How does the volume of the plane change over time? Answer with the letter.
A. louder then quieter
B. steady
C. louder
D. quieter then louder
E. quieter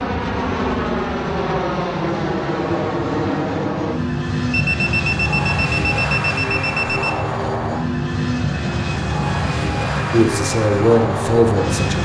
B.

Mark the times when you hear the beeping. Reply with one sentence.
You can hear the beeping from 4.5 to 7.2 s.